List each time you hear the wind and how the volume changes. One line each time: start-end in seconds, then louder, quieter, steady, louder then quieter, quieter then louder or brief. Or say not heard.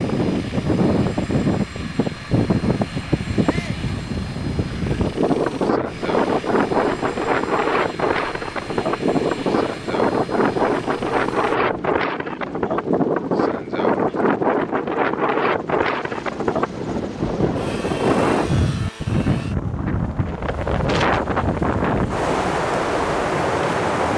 0.0-24.1 steady.